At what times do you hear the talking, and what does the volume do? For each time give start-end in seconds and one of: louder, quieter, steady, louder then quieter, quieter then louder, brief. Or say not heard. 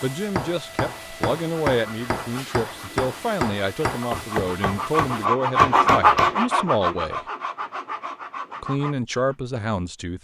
0.0-7.2 steady
8.6-10.1 brief.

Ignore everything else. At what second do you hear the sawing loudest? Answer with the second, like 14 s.
6 s.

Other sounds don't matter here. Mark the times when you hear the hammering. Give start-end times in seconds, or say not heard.
0.0-6.3.